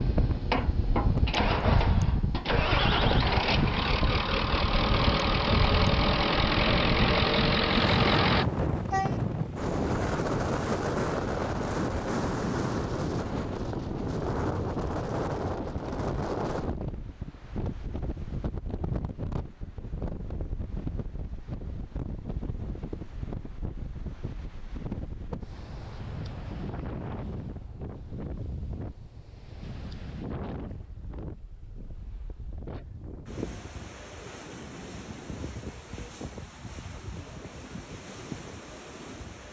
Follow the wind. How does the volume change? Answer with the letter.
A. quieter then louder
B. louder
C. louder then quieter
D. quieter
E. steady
D.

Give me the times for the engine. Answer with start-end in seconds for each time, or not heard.
0.0-8.4.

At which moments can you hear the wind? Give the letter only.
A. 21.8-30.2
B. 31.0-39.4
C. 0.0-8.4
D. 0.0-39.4
D.